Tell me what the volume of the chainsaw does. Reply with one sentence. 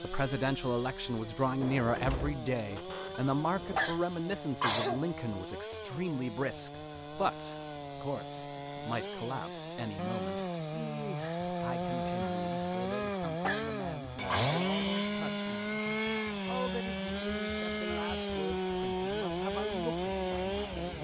The volume of the chainsaw goes up.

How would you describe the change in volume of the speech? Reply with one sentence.
The volume of the speech goes down.